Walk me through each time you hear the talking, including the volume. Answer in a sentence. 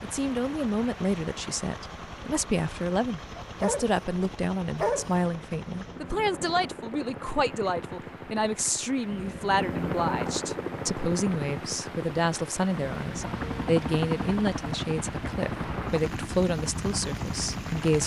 You can hear the talking from 0.0 to 18.0 s, at a steady volume.